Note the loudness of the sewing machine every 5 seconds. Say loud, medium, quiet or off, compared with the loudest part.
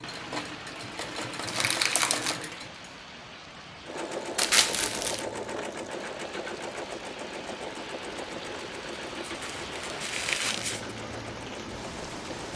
loud, loud, medium.